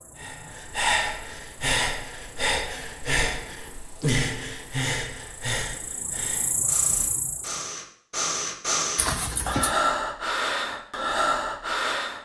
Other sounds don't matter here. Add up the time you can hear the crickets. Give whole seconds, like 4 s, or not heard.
8 s.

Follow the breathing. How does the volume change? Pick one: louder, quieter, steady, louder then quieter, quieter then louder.
quieter then louder.